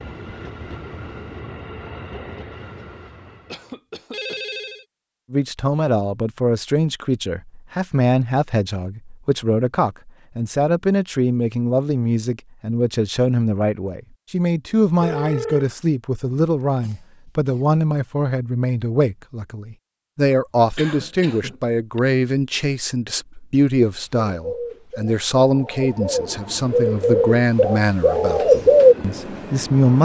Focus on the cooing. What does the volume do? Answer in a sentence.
The volume of the cooing goes up.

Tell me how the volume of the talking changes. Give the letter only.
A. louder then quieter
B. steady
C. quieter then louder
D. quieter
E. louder
B.